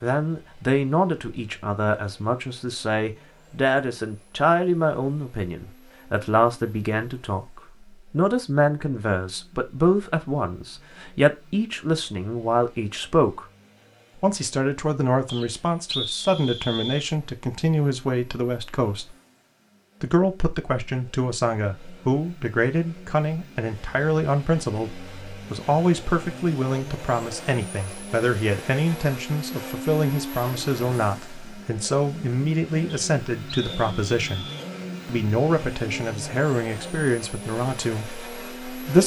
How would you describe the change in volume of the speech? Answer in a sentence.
The loudness of the speech stays about the same.